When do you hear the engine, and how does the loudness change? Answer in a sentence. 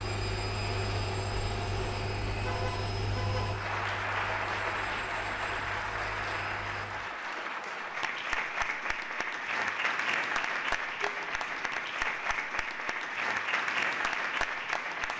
The engine can be heard from 0.0 to 7.1 s, getting quieter.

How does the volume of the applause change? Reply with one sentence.
The volume of the applause goes up.